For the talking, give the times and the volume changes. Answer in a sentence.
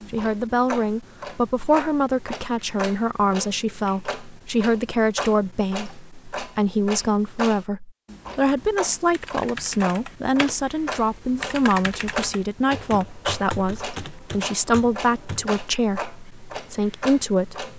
You can hear the talking from 0.1 to 17.7 s, at a steady volume.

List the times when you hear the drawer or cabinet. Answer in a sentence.
The drawer or cabinet can't be heard in this clip.